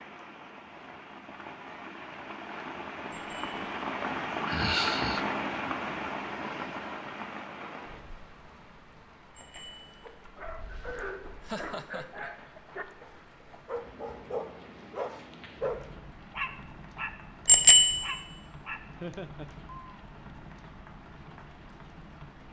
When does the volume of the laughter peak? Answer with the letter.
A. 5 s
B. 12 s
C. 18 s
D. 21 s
A.